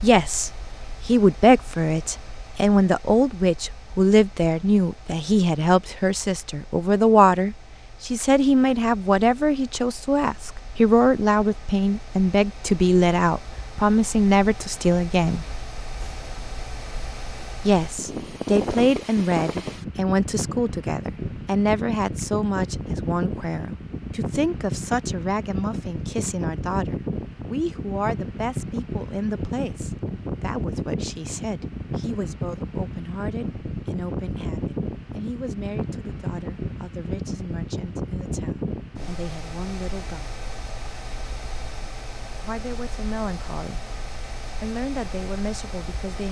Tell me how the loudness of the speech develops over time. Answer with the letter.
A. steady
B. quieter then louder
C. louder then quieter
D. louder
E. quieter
E.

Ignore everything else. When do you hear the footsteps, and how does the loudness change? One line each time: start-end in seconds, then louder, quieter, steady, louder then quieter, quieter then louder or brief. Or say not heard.
not heard.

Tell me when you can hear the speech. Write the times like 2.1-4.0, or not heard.
0.0-15.4, 17.6-40.3, 42.5-46.2.